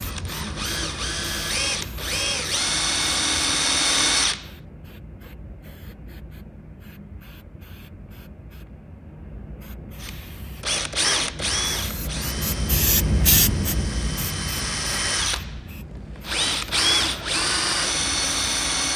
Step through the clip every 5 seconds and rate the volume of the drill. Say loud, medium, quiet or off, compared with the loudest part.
loud, off, medium, loud.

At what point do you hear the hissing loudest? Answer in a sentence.
The loudest moment of the hissing is at 13 seconds.